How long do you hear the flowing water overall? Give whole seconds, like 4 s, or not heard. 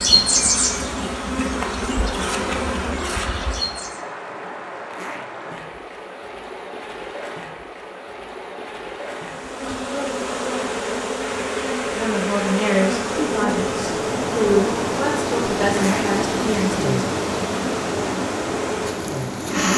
20 s.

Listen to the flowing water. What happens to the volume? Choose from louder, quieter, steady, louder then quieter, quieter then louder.
louder.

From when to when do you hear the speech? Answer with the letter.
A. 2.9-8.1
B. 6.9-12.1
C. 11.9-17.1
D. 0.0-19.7
C.